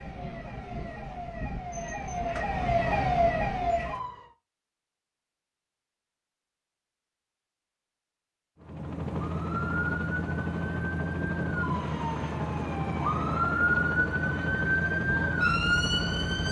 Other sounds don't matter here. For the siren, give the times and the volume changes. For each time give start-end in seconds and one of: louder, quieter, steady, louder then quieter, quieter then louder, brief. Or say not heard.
0.0-4.3 louder
9.2-16.4 louder.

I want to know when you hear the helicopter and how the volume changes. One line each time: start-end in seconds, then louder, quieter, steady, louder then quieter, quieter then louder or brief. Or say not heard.
8.6-16.4 steady.